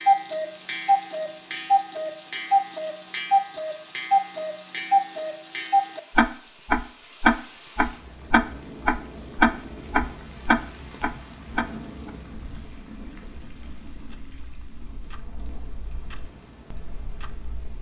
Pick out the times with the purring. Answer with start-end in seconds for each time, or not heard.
not heard.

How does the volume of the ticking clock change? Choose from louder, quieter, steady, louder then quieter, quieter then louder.
quieter.